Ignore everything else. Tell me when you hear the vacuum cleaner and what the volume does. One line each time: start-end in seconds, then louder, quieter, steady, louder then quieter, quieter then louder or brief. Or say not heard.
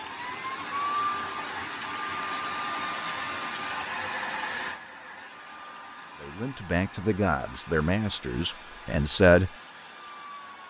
0.0-10.6 quieter.